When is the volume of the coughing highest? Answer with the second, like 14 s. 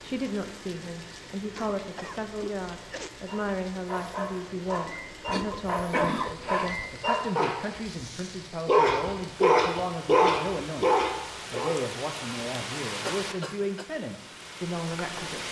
6 s.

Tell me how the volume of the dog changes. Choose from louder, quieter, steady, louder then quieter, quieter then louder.
louder.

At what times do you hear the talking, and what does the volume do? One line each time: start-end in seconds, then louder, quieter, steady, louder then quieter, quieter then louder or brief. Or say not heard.
0.0-15.4 steady.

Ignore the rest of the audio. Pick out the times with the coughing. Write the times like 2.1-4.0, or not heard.
1.6-3.1, 5.2-6.9, 13.0-13.8.